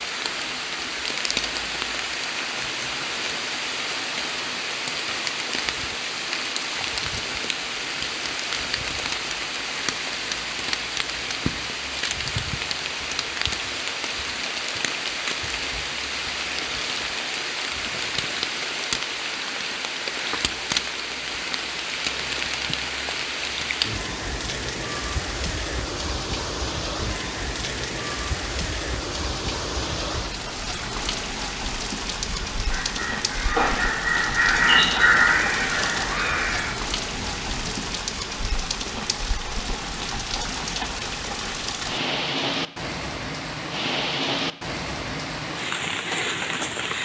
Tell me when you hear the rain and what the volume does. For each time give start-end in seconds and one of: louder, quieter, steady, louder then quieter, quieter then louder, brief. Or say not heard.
0.0-47.0 steady.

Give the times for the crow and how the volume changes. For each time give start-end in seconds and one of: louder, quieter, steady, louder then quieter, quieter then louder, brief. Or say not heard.
32.2-38.0 louder then quieter.